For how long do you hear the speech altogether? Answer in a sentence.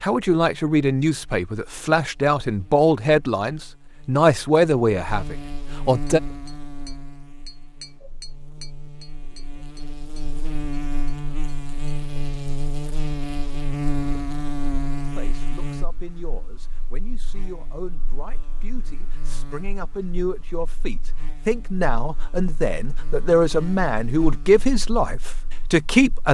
The speech can be heard for 17 seconds in total.